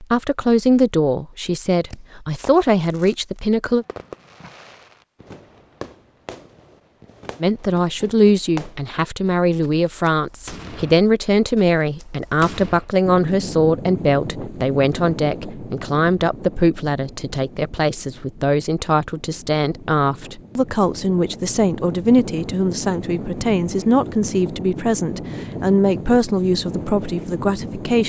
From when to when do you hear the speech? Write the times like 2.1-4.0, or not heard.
0.0-3.9, 7.4-28.0.